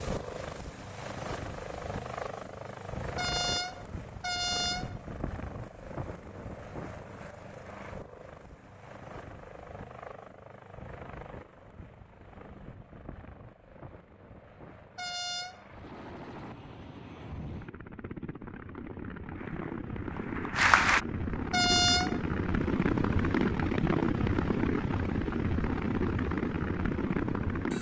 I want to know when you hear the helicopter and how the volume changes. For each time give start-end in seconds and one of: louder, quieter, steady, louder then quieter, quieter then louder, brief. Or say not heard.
0.0-27.7 quieter then louder.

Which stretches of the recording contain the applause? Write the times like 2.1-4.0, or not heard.
19.4-21.0.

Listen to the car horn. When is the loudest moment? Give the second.
22 s.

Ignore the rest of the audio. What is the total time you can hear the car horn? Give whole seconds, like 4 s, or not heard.
3 s.